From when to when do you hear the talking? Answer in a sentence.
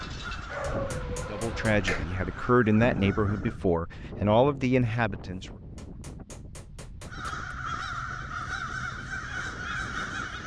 The talking can be heard from 1.2 to 5.5 s.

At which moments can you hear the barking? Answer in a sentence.
The barking can be heard from 0.5 to 2.0 s.